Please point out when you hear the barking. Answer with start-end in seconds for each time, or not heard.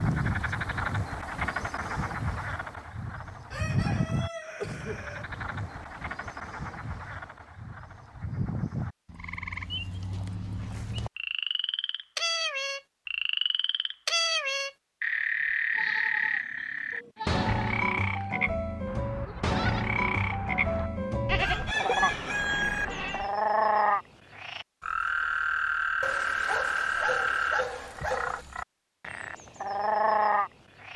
26.0-28.4.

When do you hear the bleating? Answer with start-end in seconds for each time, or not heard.
15.7-23.3.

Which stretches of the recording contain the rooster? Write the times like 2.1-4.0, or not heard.
3.5-5.2, 21.4-22.9.